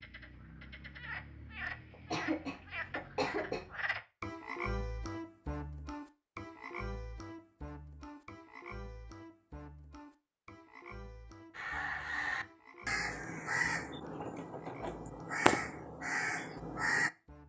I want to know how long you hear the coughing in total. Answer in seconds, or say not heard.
2 s.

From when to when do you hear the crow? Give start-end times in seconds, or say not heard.
11.6-17.1.